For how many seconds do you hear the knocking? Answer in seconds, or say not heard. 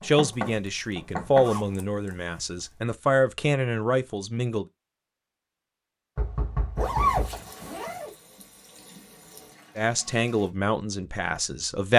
3 s.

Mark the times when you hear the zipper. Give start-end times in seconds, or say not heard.
0.3-2.8, 6.8-8.2.